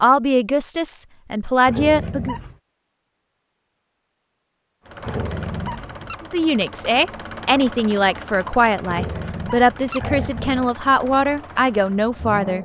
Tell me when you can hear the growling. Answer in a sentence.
The growling can be heard from 1.6 to 2.5 s, from 5.0 to 6.2 s and from 8.8 to 10.7 s.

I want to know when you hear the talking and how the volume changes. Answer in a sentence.
The talking can be heard briefly from 0.0 to 2.4 s; and from 6.3 to 12.6 s, at a steady volume.